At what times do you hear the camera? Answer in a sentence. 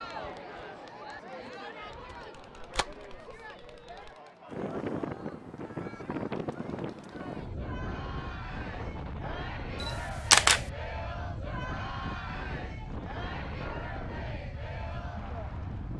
You can hear the camera from 2.4 to 4.1 s and from 9.8 to 10.6 s.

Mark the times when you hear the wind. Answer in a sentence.
You can hear the wind from 4.5 to 15.9 s.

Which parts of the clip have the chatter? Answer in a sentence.
You can hear the chatter from 0.0 to 15.9 s.